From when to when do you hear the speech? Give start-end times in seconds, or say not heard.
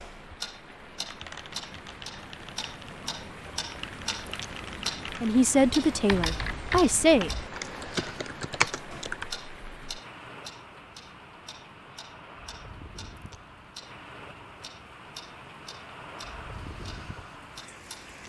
5.2-7.3.